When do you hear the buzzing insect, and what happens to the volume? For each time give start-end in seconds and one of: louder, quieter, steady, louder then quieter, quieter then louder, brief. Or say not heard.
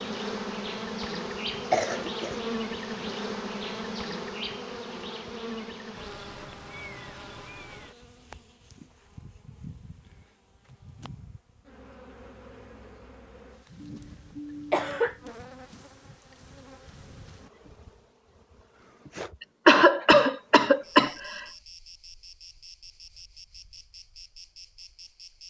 0.0-25.4 quieter.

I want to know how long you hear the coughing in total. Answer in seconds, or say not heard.
4 s.